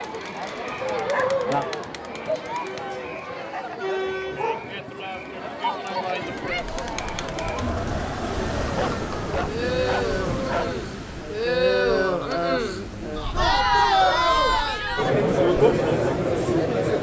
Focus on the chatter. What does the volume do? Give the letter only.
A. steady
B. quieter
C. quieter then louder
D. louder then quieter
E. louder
E.